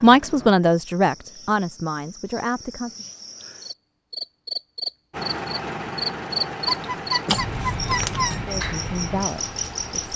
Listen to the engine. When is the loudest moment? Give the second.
6 s.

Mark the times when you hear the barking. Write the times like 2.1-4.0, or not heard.
6.7-8.4.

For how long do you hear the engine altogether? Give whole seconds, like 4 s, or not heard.
5 s.